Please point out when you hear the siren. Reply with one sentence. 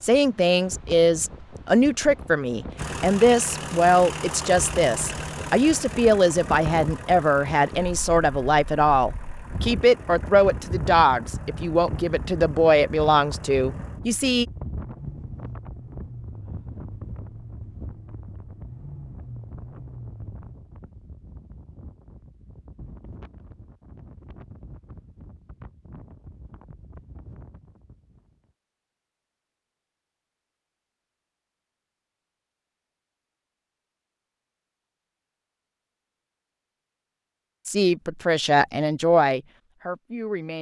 You can't hear the siren here.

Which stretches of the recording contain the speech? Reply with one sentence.
The speech can be heard from 0.0 to 14.4 s and from 37.6 to 40.5 s.